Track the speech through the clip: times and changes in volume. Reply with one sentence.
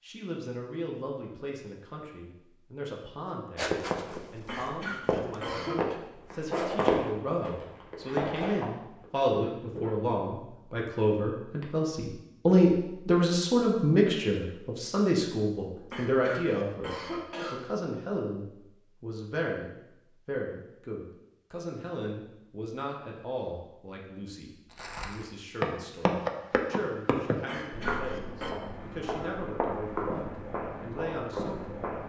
You can hear the speech from 0.0 to 31.8 s, getting louder then quieter.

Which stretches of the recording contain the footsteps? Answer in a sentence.
You can hear the footsteps from 3.5 to 9.9 s and from 24.6 to 32.0 s.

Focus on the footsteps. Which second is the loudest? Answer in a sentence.
The volume of the footsteps peaks at 7 seconds.